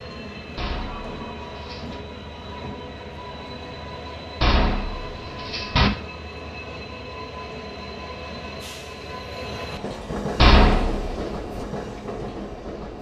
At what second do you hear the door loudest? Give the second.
11 s.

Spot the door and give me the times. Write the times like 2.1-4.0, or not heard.
0.6-2.0, 4.4-5.9, 10.3-11.2.